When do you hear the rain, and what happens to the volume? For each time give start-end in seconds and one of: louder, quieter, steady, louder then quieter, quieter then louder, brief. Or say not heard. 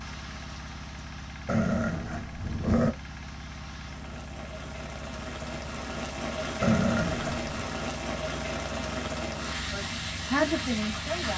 0.0-11.3 louder.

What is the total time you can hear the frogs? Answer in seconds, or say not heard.
not heard.